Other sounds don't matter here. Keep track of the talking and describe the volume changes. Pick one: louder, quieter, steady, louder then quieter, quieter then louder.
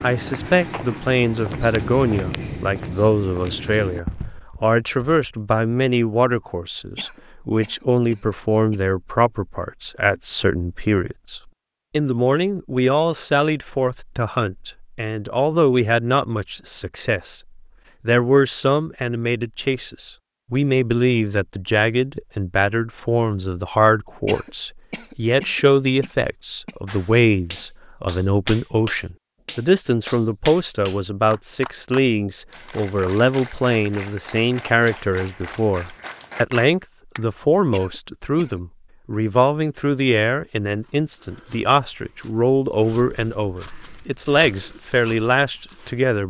steady.